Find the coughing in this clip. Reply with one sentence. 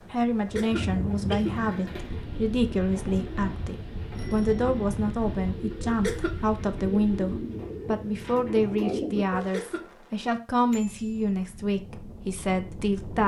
The coughing can be heard from 0.4 to 1.9 s, from 5.8 to 6.4 s and from 9.3 to 9.9 s.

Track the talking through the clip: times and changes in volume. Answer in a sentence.
You can hear the talking from 0.1 to 13.2 s, at a steady volume.